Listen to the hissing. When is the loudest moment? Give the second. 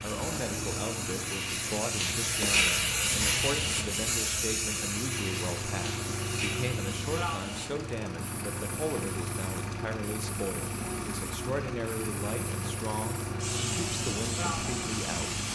3 s.